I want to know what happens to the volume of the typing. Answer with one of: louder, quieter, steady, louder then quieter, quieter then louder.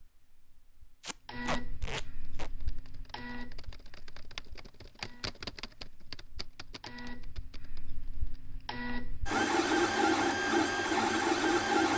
louder then quieter.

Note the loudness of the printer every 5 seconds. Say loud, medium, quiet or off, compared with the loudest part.
quiet, medium, loud.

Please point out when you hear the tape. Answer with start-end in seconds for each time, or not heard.
1.0-2.5.